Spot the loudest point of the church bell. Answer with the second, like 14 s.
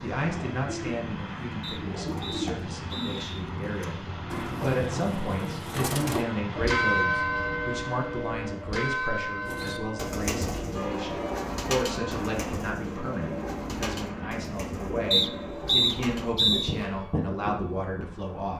7 s.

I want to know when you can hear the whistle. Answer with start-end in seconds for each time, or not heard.
1.6-3.4, 15.1-16.8.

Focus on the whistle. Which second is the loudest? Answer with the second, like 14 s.
16 s.